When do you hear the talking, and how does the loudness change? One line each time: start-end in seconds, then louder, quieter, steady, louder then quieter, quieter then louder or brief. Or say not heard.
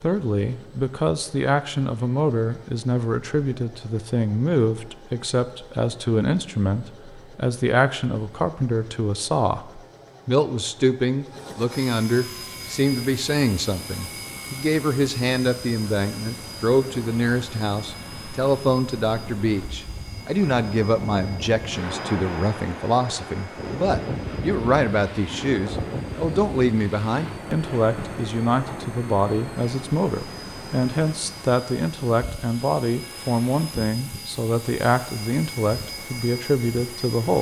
0.0-37.3 steady.